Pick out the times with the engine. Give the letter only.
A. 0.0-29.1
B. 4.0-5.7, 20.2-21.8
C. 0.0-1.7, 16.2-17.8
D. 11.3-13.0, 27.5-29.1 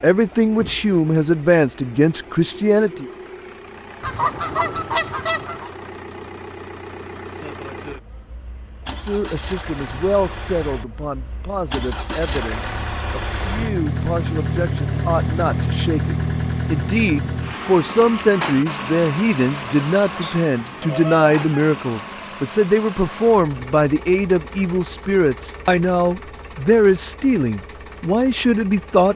A.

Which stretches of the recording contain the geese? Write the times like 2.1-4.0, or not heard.
4.0-5.7, 20.2-21.8.